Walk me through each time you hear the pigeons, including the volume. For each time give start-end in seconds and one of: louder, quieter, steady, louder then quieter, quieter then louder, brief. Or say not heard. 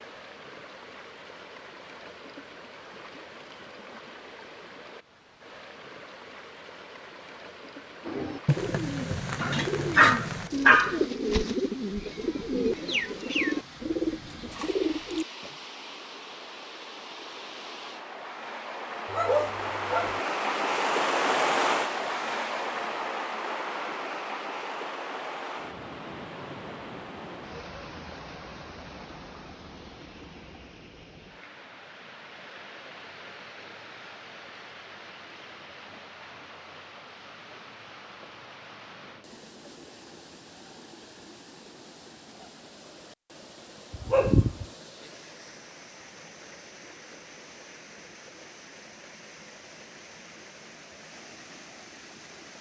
8.1-15.5 steady.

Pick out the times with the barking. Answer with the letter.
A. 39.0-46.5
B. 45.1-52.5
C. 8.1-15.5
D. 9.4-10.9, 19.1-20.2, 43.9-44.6
D.